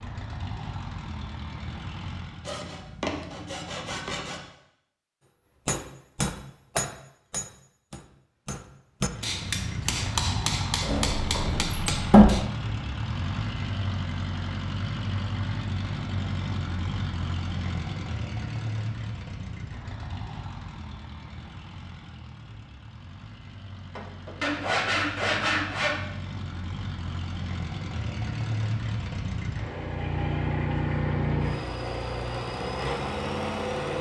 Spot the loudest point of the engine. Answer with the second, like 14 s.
31 s.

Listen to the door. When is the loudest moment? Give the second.
12 s.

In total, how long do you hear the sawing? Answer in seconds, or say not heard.
4 s.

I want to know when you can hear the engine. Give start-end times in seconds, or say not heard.
0.0-2.6, 9.0-33.9.